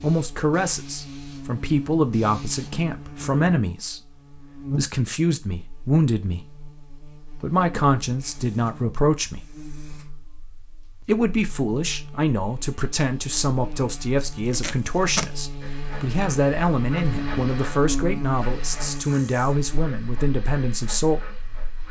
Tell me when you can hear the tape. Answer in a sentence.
The tape can be heard from 14.2 to 15.3 s.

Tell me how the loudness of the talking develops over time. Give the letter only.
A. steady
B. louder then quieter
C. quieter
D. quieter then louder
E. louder
A.